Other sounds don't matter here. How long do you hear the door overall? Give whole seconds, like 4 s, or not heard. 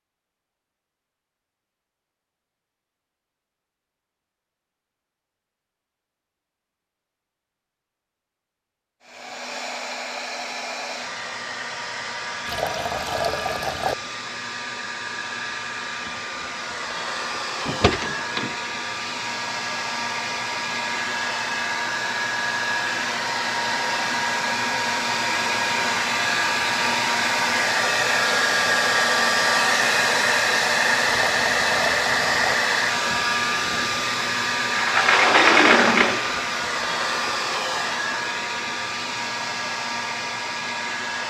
3 s.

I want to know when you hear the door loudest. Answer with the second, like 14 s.
36 s.